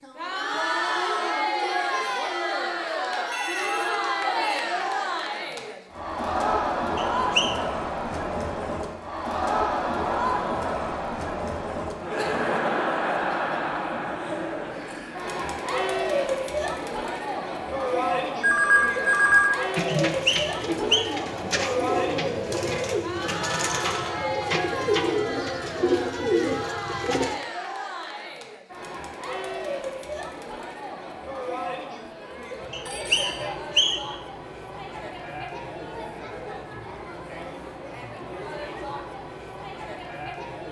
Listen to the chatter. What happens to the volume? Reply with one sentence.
The loudness of the chatter goes down.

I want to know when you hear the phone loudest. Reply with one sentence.
The volume of the phone peaks at 19 seconds.